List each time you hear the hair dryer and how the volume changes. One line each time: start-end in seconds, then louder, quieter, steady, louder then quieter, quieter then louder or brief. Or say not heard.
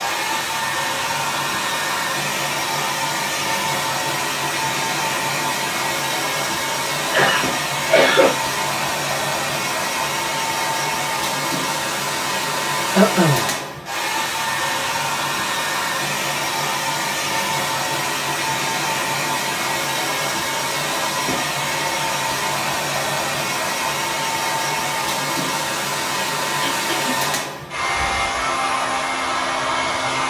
0.0-30.2 steady.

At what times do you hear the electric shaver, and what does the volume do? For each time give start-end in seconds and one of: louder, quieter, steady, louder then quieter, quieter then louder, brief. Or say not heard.
not heard.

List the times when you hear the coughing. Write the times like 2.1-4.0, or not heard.
7.1-8.3, 12.9-13.5, 26.6-27.1.